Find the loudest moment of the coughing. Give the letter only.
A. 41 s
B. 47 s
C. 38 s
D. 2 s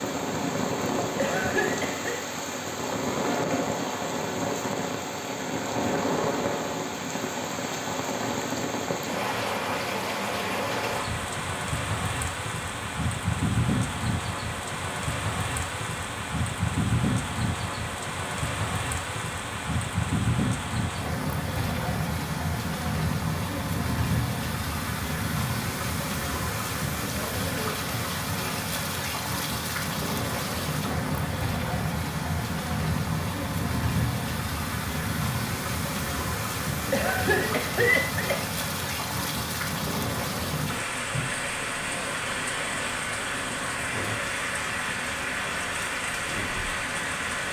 C.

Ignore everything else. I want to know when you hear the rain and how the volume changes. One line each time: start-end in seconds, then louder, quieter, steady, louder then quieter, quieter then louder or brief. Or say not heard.
0.0-47.4 steady.